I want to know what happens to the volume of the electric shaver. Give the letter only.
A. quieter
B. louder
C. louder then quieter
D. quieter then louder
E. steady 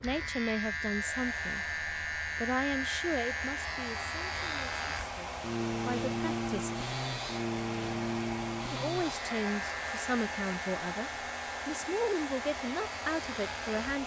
A.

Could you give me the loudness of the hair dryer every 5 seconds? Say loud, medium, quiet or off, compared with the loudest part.
medium, loud, loud.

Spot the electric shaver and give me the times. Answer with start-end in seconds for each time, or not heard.
0.0-14.0.